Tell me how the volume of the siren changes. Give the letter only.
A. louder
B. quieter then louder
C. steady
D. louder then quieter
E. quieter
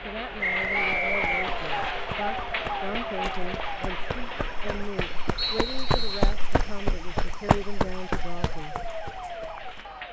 B.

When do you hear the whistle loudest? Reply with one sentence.
The loudest moment of the whistle is at 1 second.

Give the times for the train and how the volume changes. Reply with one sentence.
You can hear the train from 0.0 to 10.0 s, getting quieter.